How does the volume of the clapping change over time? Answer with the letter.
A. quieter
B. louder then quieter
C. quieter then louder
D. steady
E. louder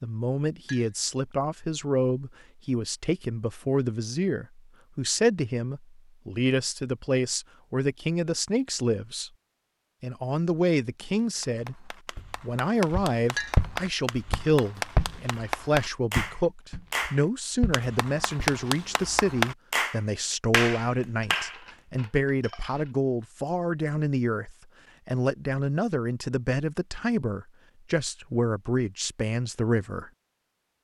E.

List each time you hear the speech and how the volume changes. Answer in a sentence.
You can hear the speech from 0.0 to 9.3 s, at a steady volume; and from 10.0 to 30.1 s, at a steady volume.